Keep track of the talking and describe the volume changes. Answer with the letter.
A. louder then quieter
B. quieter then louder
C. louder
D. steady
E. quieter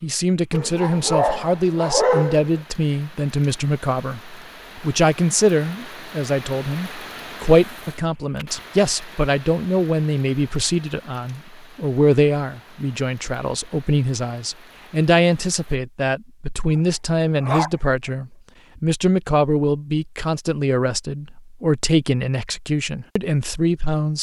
D.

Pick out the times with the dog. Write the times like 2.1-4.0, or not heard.
0.5-2.6, 16.7-17.7.